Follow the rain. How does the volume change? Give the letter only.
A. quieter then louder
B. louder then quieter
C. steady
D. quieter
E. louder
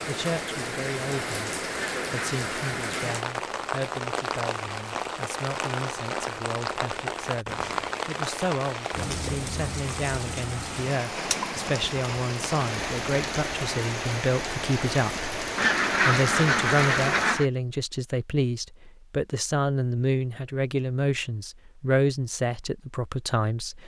C.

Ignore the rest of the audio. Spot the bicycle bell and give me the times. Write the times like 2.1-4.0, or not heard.
not heard.